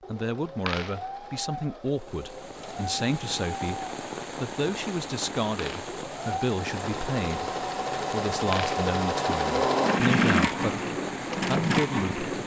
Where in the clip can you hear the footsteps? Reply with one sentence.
You can't hear the footsteps here.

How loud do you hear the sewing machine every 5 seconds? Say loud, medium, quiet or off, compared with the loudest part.
quiet, loud, loud.